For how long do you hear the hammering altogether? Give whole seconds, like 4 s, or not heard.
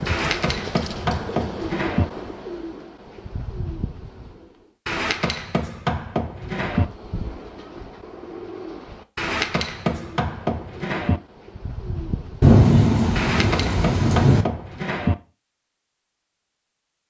8 s.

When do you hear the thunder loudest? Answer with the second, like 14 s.
13 s.